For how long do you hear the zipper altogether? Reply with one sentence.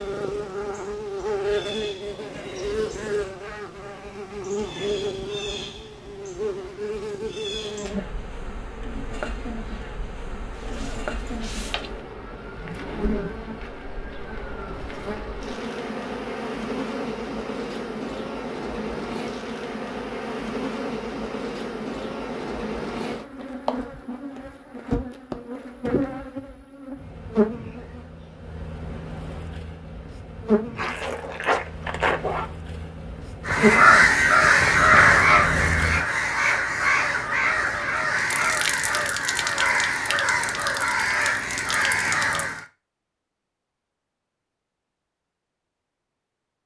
The zipper can be heard for 3 seconds in total.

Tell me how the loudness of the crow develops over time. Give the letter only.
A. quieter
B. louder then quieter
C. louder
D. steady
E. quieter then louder
A.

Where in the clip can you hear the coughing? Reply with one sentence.
You can't hear the coughing here.